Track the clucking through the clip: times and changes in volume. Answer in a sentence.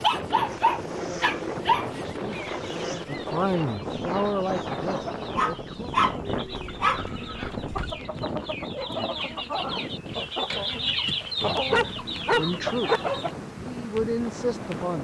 You can hear the clucking from 2.2 to 13.3 s, getting louder.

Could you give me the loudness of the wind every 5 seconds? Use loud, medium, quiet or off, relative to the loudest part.
loud, loud, medium.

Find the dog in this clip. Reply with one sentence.
The dog can be heard from 0.0 to 1.9 s, from 5.3 to 8.0 s and from 11.7 to 13.0 s.